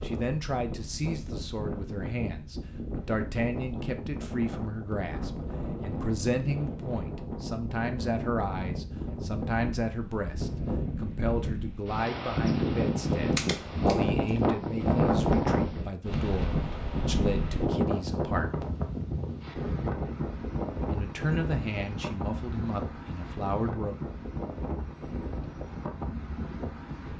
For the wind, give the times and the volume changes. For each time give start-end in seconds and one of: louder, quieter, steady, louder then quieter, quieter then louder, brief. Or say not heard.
0.0-27.1 louder then quieter.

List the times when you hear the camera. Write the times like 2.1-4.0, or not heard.
13.3-14.3.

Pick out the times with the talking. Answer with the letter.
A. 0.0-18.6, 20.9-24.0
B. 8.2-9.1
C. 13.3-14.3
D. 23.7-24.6
A.